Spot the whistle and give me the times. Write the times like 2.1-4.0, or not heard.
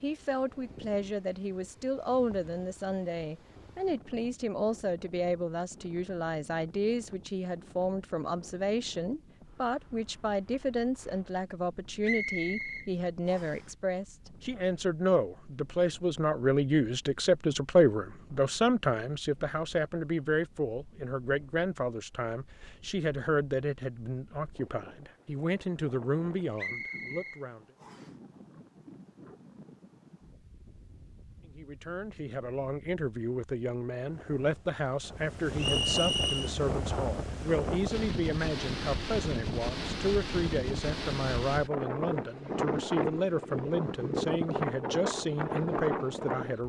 12.0-13.6, 26.6-28.1, 35.5-36.5.